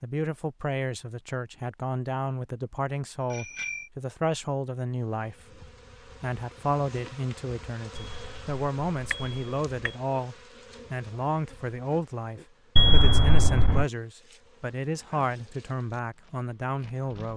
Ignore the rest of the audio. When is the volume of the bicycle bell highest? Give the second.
13 s.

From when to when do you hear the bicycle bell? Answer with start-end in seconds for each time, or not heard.
3.3-3.9, 8.0-9.9, 12.8-13.8.